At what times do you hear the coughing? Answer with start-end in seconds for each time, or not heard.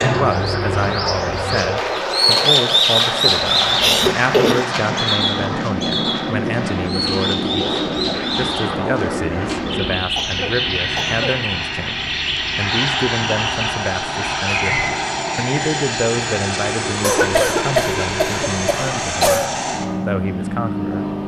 3.5-4.7, 10.2-11.4, 17.0-19.5.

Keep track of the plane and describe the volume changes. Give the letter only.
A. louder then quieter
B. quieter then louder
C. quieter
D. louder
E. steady
E.